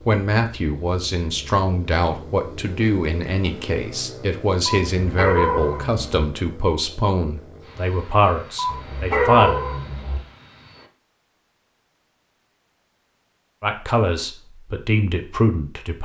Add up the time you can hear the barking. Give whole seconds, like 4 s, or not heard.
3 s.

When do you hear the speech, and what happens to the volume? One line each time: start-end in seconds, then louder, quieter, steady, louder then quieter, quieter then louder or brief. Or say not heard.
0.1-9.6 steady
13.6-16.0 brief.